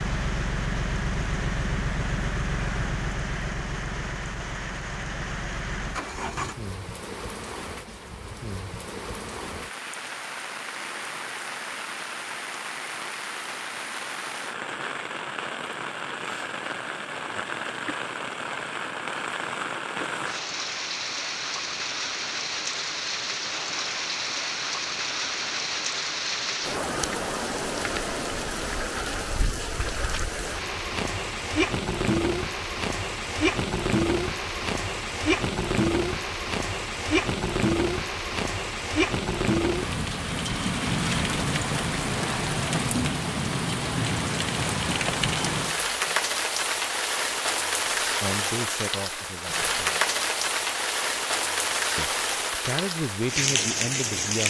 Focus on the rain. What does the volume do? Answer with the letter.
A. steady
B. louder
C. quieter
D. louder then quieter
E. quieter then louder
B.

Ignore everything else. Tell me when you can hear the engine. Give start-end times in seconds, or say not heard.
0.0-6.5.